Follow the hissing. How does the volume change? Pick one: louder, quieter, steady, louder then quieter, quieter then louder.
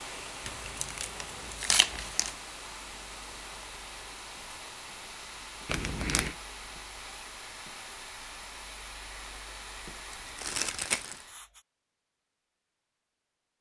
steady.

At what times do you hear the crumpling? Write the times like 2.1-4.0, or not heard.
0.5-2.4, 5.7-6.3, 10.1-11.2.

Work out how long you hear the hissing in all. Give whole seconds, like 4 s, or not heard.
12 s.